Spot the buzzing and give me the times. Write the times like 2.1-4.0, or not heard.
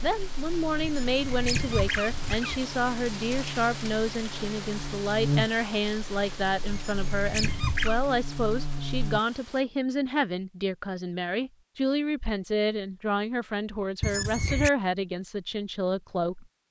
0.0-9.2.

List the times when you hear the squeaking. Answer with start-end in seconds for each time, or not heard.
0.8-2.6, 6.7-8.0, 14.0-14.7.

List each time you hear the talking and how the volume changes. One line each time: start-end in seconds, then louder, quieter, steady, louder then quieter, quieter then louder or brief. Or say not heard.
0.0-16.4 steady.